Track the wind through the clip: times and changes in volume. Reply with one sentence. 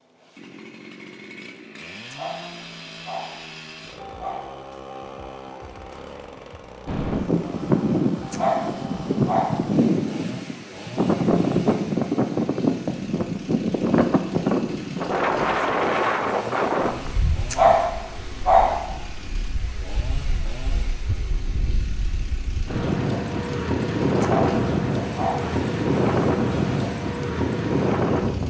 You can hear the wind from 6.8 to 28.4 s, getting quieter then louder.